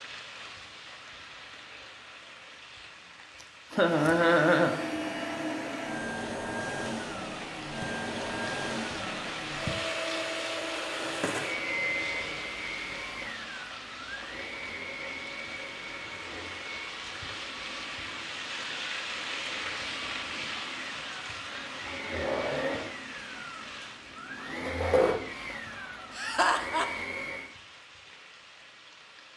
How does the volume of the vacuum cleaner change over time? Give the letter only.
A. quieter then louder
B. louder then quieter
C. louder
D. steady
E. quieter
A.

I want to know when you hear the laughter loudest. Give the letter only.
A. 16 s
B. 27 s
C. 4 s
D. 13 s
C.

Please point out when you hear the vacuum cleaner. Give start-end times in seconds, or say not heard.
3.7-27.5.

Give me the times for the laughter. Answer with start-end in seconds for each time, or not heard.
3.7-4.8, 26.1-27.1.